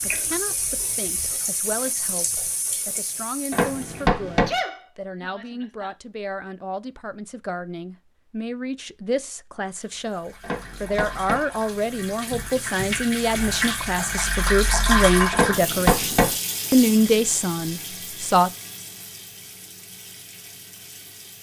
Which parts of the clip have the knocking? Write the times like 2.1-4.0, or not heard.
3.5-4.5, 10.4-11.4, 15.3-16.4.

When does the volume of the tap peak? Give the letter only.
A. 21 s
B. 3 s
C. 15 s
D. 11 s
C.